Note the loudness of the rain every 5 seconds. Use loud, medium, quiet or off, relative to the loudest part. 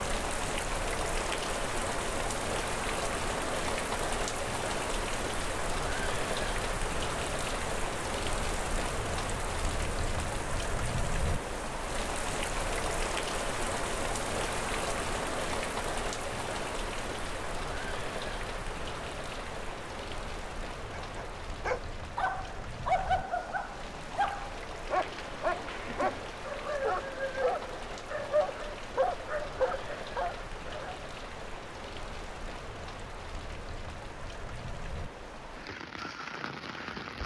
loud, loud, loud, loud, medium, medium, medium, medium.